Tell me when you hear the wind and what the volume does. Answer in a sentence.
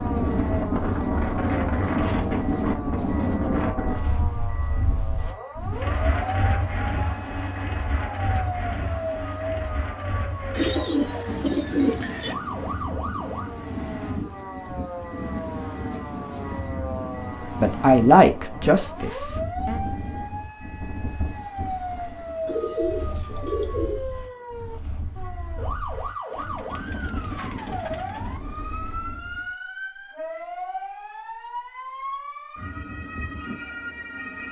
The wind can be heard from 0.0 to 29.5 s, getting quieter.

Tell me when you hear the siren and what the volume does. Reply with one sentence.
The siren can be heard from 0.0 to 34.4 s, at a steady volume.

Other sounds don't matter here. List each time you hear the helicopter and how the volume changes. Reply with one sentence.
You can't hear the helicopter here.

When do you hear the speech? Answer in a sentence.
The speech can be heard from 17.6 to 19.8 s.